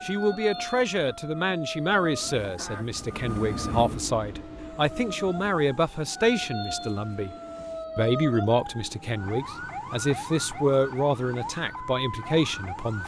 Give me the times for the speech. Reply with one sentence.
You can hear the speech from 0.0 to 7.3 s and from 8.0 to 13.0 s.